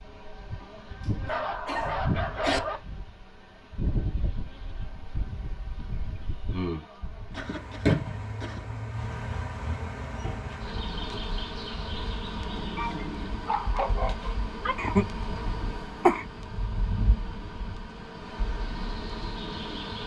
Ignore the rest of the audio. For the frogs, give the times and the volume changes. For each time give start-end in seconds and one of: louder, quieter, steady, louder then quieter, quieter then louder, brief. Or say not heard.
not heard.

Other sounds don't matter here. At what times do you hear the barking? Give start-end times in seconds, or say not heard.
1.2-2.8, 12.8-14.8.